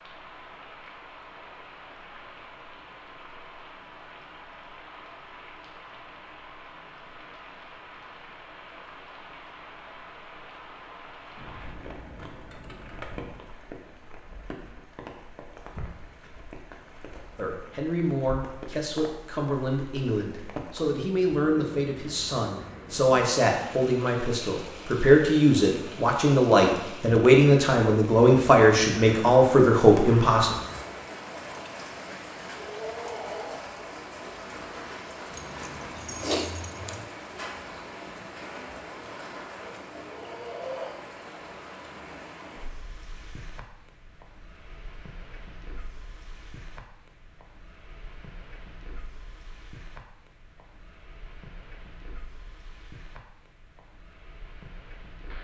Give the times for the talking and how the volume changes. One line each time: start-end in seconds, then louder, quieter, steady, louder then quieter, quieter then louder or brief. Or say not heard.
17.4-30.6 louder.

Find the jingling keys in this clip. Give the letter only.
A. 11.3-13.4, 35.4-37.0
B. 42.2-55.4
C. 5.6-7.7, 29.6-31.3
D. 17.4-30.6
A.